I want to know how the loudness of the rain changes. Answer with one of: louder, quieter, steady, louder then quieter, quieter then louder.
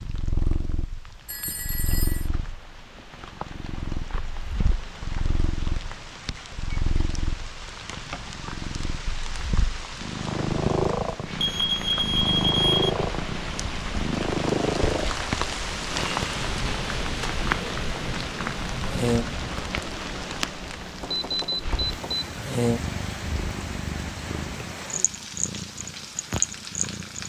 louder then quieter.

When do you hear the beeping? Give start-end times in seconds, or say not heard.
1.2-2.2, 11.3-12.9, 21.0-22.3.